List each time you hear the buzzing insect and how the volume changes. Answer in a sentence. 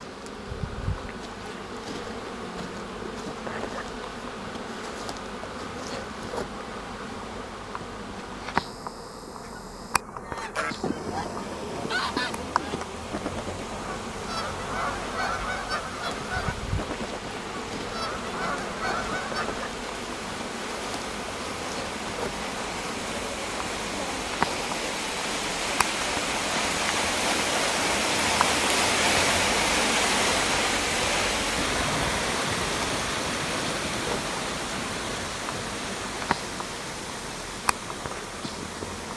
The buzzing insect can be heard from 0.0 to 39.1 s, at a steady volume.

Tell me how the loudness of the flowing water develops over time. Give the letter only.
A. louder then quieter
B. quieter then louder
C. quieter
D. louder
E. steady
A.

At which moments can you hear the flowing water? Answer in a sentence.
The flowing water can be heard from 11.3 to 39.1 s.